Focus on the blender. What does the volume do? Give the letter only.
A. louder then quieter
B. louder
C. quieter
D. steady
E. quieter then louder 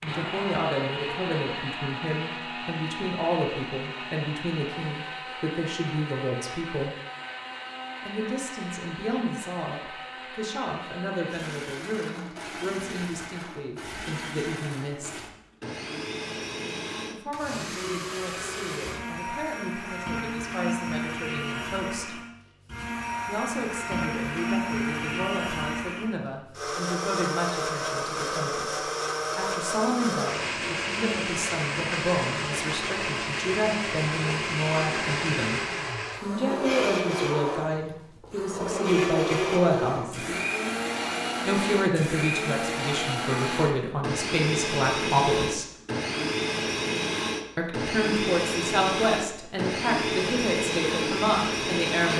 B.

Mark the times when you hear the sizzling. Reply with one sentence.
You can't hear the sizzling here.